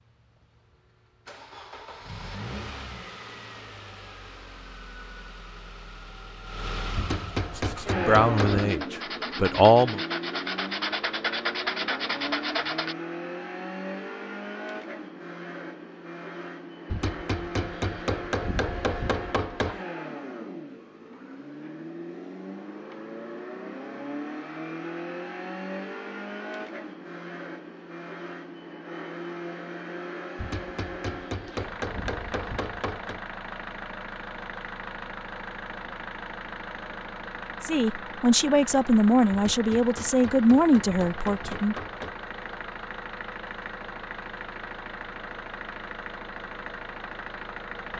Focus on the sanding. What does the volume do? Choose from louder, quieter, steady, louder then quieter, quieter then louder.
louder.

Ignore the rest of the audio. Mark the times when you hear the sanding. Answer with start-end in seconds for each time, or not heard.
7.5-12.9.